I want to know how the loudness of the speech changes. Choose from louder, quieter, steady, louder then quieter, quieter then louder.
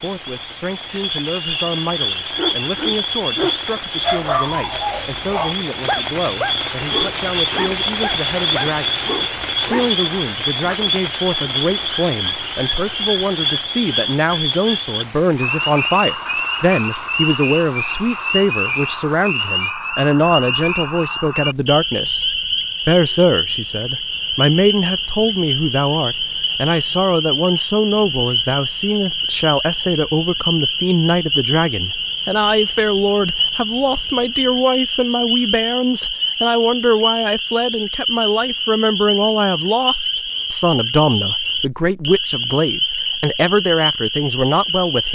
louder.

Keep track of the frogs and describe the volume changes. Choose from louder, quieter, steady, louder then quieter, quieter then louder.
steady.